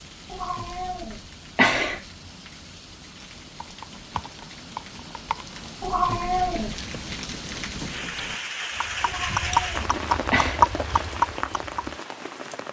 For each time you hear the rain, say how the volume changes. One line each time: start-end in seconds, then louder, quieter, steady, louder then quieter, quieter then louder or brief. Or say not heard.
0.0-12.6 louder.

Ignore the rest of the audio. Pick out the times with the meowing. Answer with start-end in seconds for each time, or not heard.
0.3-2.0, 5.8-6.8, 9.0-10.6.